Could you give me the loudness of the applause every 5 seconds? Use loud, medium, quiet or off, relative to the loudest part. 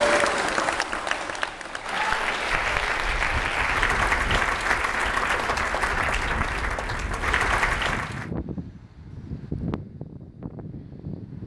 loud, loud, off.